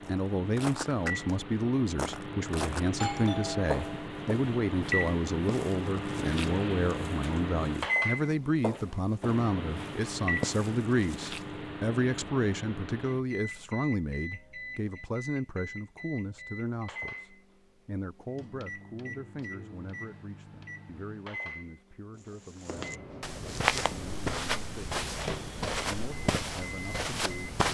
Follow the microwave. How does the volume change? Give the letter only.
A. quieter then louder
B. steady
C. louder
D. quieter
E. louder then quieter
D.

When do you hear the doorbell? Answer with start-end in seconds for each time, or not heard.
3.0-4.1.